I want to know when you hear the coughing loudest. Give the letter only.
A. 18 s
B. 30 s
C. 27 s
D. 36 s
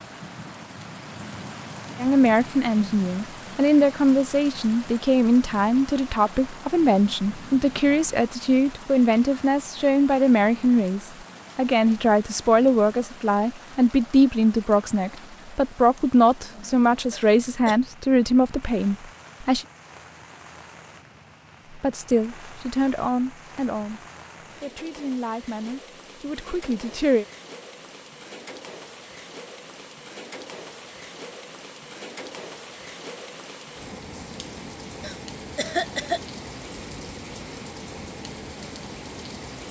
D.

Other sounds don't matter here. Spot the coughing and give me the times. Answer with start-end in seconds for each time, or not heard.
17.1-17.8, 35.0-36.2.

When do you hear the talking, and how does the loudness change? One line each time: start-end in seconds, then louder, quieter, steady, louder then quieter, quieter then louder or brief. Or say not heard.
2.0-19.6 steady
21.7-27.2 quieter then louder.